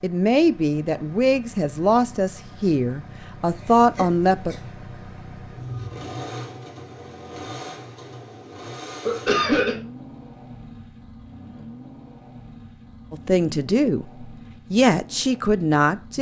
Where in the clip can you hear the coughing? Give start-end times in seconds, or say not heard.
4.0-4.6, 9.1-9.8.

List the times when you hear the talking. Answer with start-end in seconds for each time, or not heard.
0.0-4.5, 13.1-16.1.